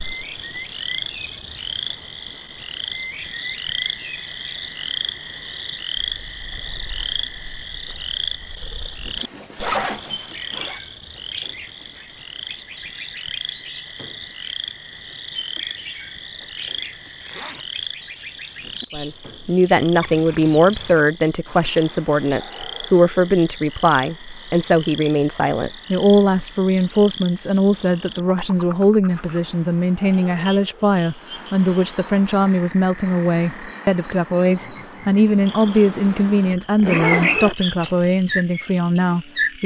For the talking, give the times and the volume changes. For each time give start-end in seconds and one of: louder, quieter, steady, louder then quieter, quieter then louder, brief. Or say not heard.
18.9-39.6 steady.